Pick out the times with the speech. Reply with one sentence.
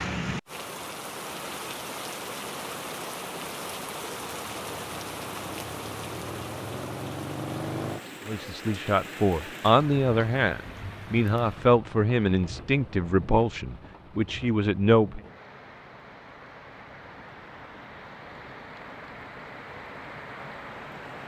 You can hear the speech from 8.2 to 15.2 s.